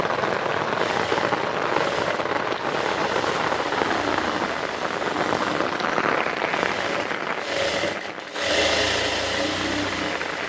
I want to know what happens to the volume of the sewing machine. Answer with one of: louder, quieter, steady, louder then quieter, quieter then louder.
louder.